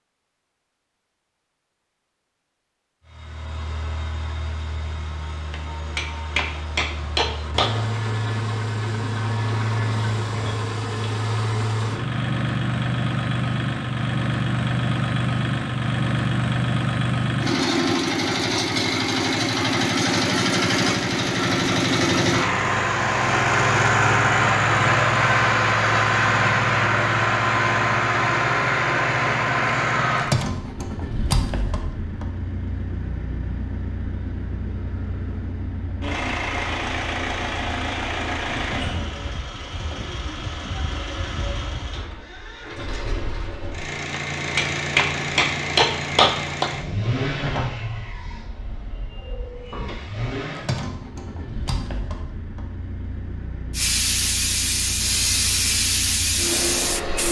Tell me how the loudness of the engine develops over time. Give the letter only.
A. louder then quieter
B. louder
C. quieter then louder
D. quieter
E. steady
A.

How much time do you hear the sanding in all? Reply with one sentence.
The sanding can't be heard in this clip.